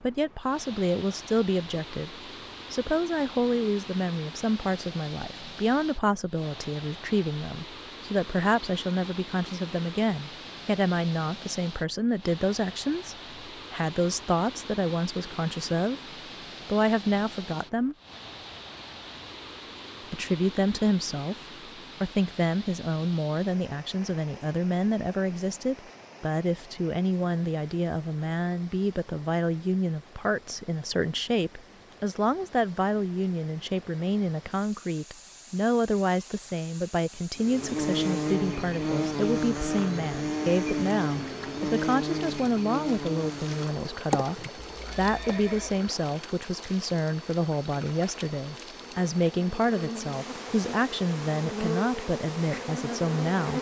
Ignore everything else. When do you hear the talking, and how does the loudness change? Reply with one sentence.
The talking can be heard from 0.0 to 16.0 s, at a steady volume; briefly from 16.6 to 17.9 s; briefly from 20.1 to 21.4 s; and from 22.0 to 53.5 s, at a steady volume.